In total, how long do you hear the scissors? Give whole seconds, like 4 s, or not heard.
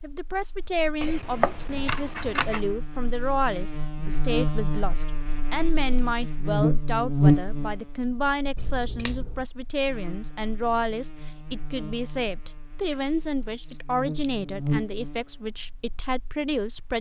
3 s.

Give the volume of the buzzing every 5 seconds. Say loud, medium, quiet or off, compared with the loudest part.
medium, loud, medium, quiet.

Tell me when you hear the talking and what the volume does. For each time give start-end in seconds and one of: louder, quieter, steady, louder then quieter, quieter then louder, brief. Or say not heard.
0.0-16.9 steady.